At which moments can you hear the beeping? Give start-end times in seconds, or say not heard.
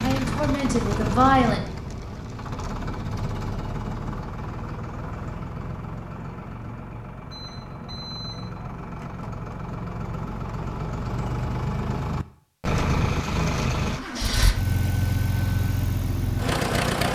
7.3-8.6.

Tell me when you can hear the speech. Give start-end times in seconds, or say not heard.
0.0-1.6.